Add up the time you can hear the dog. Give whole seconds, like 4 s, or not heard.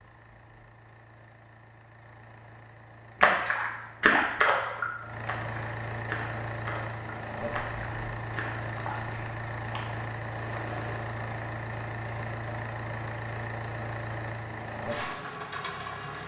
not heard.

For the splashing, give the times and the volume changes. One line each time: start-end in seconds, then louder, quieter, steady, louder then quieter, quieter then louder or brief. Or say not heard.
3.2-11.0 quieter.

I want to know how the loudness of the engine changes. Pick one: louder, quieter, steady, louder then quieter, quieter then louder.
louder.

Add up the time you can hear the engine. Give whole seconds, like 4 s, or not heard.
16 s.